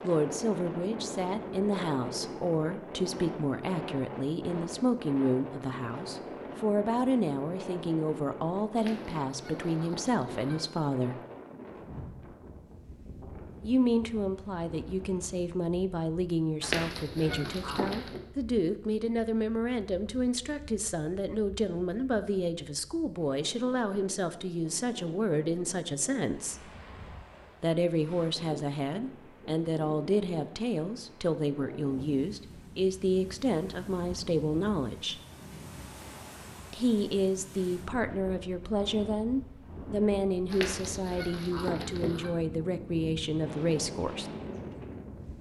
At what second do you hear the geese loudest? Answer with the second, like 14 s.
17 s.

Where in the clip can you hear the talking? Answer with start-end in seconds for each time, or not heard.
0.0-11.2, 13.6-26.7, 27.6-35.2, 36.7-44.2.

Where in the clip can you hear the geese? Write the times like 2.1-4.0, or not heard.
8.8-10.6, 16.6-18.2, 40.5-42.3.